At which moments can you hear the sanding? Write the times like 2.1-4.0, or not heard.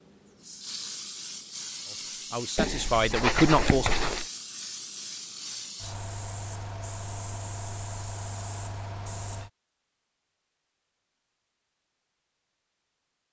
2.5-4.2.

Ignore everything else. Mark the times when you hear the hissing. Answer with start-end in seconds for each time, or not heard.
0.0-9.5.